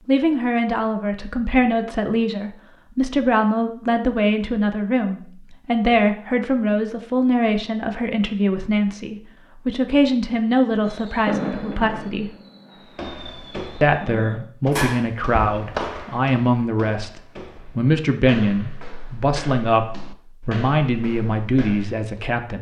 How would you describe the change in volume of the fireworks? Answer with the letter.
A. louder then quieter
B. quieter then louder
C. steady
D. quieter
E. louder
B.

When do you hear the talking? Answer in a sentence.
You can hear the talking from 0.1 to 12.3 s, from 13.8 to 19.9 s and from 20.4 to 22.5 s.